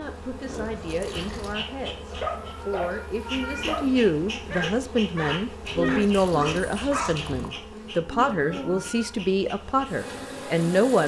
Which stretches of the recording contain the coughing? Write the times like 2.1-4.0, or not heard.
not heard.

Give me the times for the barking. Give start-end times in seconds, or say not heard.
2.2-7.2.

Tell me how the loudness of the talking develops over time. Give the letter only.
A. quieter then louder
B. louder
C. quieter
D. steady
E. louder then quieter
B.